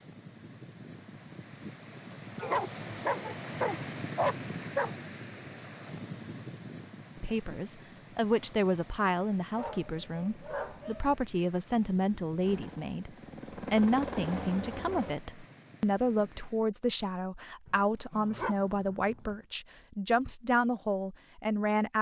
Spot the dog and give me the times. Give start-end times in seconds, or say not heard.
2.4-5.0, 9.6-11.2, 17.6-19.4.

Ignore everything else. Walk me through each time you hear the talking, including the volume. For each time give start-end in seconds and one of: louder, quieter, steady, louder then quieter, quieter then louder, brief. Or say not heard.
7.2-21.9 steady.